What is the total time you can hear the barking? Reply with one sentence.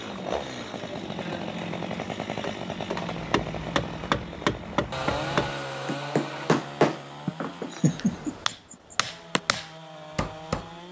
The barking can't be heard in this clip.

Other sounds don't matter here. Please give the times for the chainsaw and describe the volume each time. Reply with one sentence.
The chainsaw can be heard from 0.0 to 10.8 s, getting quieter.